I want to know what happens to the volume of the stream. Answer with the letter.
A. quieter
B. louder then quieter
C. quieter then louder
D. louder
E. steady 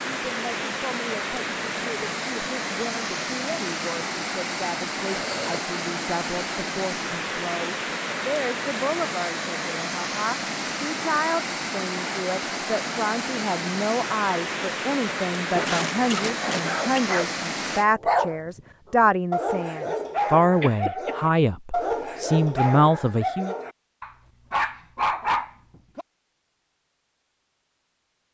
E.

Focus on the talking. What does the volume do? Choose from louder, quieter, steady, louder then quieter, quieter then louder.
louder.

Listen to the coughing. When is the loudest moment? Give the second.
16 s.